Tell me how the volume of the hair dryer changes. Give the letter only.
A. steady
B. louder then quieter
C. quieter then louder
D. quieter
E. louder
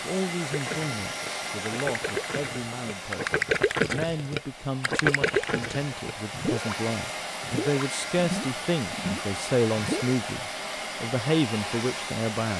C.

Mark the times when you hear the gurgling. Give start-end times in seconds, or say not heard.
0.5-10.2.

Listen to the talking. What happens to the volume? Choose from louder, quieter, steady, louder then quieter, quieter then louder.
louder.